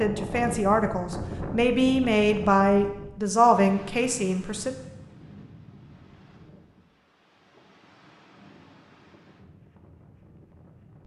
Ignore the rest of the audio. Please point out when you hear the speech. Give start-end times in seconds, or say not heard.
0.0-4.7.